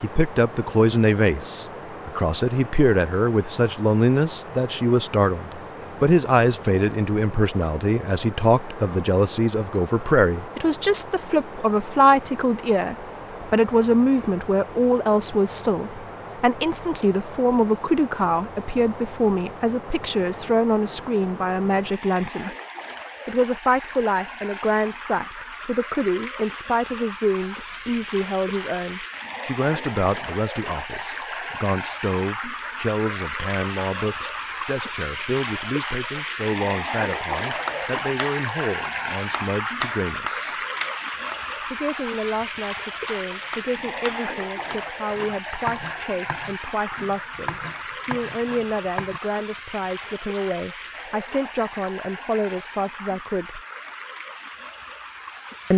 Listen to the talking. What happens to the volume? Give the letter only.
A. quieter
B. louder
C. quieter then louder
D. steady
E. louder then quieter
A.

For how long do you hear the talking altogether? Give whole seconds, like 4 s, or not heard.
52 s.